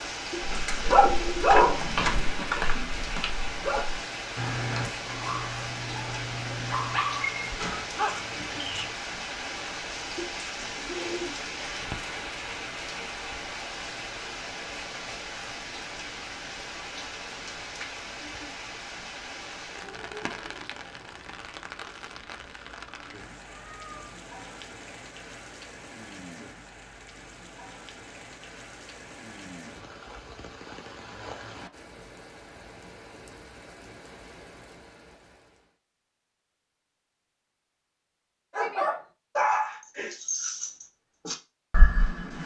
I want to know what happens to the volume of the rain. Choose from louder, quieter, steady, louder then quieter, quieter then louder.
quieter.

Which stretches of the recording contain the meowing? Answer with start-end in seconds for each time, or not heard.
17.8-18.4, 23.4-24.1.